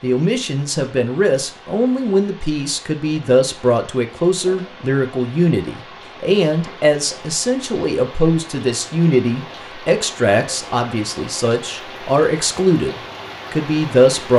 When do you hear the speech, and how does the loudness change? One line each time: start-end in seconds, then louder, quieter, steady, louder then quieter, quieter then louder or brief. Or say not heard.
0.0-14.3 steady.